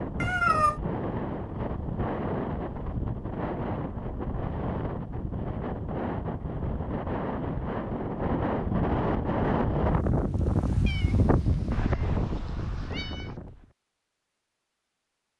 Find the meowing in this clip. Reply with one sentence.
You can hear the meowing from 0.2 to 0.8 s and from 10.8 to 13.3 s.